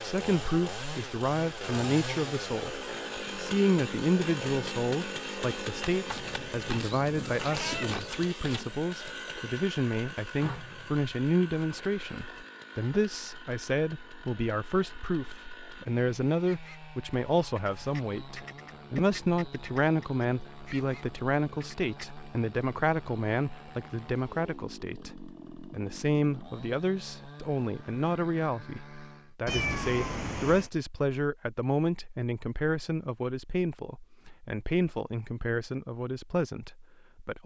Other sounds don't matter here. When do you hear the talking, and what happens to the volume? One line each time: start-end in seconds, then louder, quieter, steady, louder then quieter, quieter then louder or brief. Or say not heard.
0.0-37.4 steady.